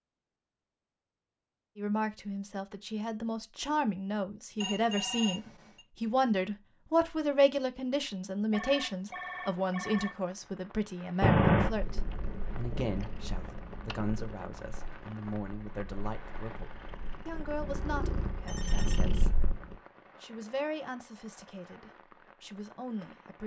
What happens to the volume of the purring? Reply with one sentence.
The volume of the purring goes down, then up.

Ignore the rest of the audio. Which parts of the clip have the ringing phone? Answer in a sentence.
The ringing phone can be heard from 4.6 to 5.8 s, from 8.5 to 10.2 s and from 18.4 to 19.1 s.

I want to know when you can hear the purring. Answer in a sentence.
The purring can be heard from 11.2 to 19.8 s.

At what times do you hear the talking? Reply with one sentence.
The talking can be heard from 1.8 to 19.4 s and from 20.2 to 23.4 s.